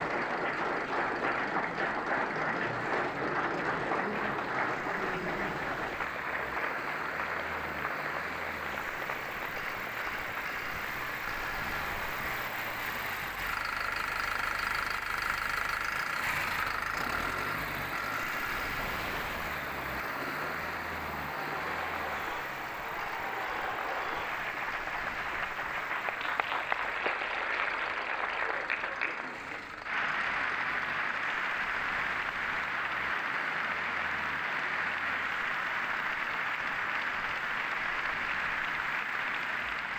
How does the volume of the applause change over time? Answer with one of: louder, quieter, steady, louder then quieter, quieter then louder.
quieter then louder.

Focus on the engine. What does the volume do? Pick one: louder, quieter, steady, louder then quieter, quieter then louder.
louder then quieter.